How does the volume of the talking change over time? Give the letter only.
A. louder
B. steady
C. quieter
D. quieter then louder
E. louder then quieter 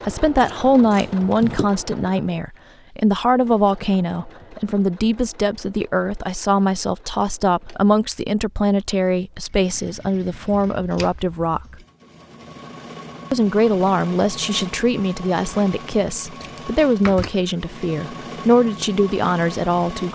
B.